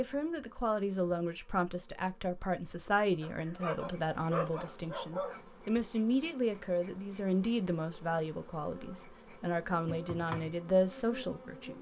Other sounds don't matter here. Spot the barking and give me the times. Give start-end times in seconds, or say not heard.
3.1-5.4.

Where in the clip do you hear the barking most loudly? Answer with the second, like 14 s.
4 s.